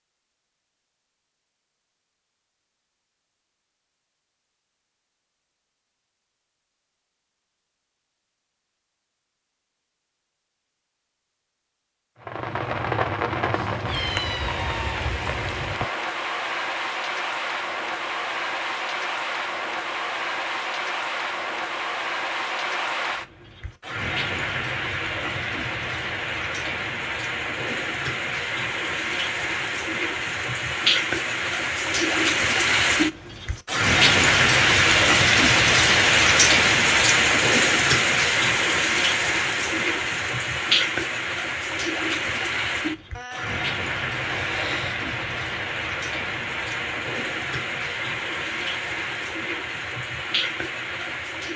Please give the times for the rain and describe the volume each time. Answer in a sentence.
You can hear the rain from 12.2 to 51.5 s, getting louder then quieter.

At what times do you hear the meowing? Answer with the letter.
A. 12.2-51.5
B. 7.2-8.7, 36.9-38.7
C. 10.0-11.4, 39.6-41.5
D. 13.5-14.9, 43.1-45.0
D.